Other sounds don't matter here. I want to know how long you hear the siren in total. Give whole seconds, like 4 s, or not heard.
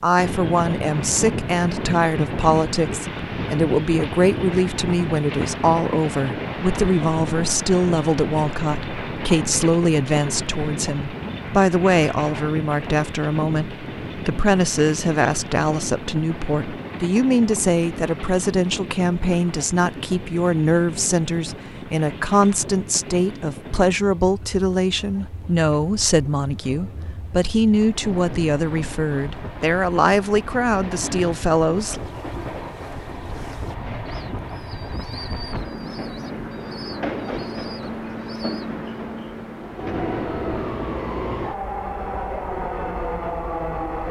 not heard.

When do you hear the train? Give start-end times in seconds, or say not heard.
0.0-44.0.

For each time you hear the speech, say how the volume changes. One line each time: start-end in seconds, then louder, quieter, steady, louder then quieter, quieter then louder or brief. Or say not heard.
0.0-32.0 steady.